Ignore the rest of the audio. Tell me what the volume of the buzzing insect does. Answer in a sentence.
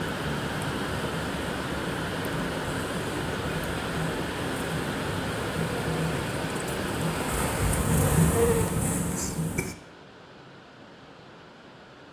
The loudness of the buzzing insect goes up.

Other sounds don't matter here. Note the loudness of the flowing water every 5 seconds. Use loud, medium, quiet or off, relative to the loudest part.
loud, loud, quiet.